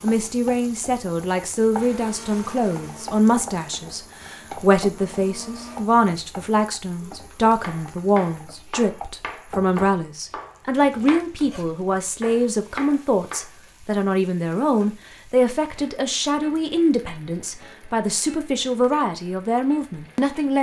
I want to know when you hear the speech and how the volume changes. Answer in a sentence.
You can hear the speech from 0.0 to 20.5 s, at a steady volume.